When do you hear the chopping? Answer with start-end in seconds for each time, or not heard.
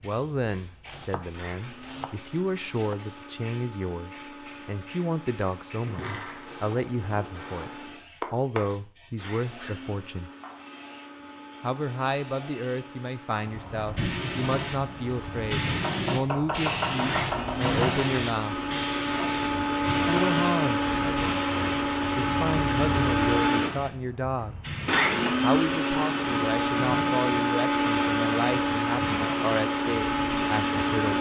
0.6-3.0, 8.2-9.8, 15.8-18.1, 25.1-26.1.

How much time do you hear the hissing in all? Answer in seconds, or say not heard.
31 s.